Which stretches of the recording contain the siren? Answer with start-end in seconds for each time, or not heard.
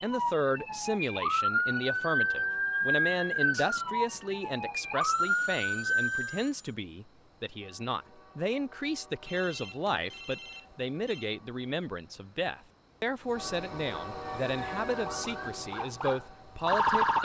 0.0-6.3, 14.2-17.2.